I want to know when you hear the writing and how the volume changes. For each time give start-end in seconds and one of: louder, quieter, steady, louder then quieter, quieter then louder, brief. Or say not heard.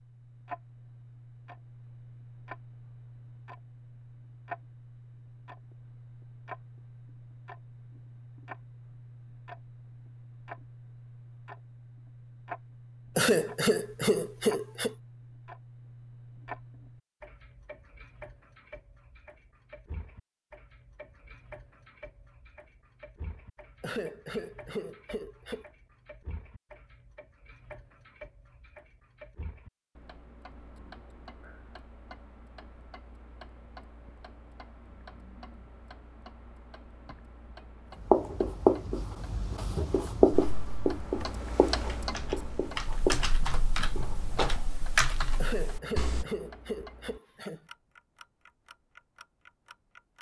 38.0-44.6 quieter.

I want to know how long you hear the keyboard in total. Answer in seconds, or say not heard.
6 s.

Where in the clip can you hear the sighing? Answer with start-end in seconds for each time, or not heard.
13.2-14.9, 23.8-25.6, 45.4-47.6.